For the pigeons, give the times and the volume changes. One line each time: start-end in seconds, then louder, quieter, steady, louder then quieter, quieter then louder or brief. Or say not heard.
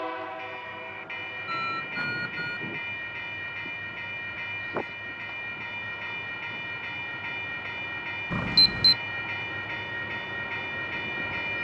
not heard.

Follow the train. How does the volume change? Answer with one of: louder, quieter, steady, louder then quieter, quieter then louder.
steady.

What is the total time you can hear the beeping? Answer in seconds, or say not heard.
2 s.